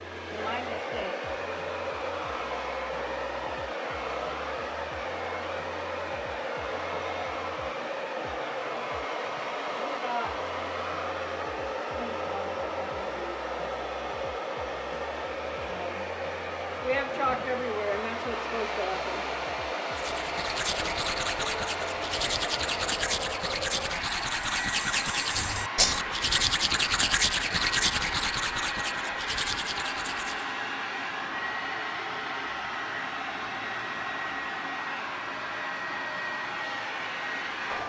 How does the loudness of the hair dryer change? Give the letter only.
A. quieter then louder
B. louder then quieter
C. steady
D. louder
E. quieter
C.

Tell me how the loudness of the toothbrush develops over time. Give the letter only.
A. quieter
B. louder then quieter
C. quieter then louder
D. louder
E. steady
B.